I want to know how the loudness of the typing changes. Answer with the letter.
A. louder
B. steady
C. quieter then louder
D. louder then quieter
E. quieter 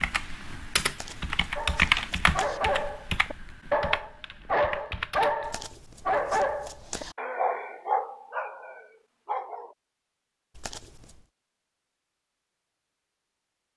D.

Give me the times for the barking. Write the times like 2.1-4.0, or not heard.
1.6-9.8.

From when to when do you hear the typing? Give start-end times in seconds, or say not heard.
0.0-5.5.